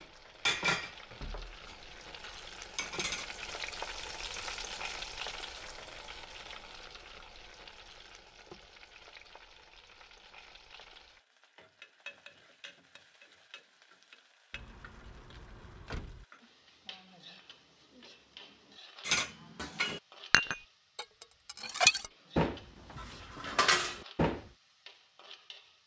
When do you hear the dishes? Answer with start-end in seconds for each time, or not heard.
0.5-3.5, 19.1-24.4.